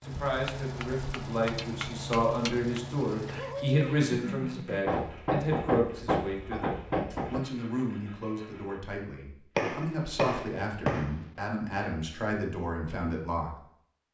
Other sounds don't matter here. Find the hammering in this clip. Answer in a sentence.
You can hear the hammering from 0.2 to 2.8 s, from 4.8 to 7.5 s and from 9.6 to 11.2 s.